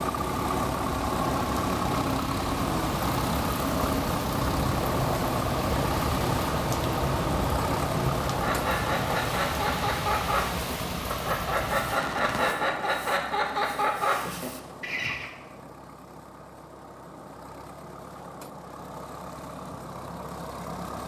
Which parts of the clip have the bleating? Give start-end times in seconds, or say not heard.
not heard.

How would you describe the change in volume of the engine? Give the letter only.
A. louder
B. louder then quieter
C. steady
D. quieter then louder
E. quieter
E.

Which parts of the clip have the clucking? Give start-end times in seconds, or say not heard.
8.2-15.3.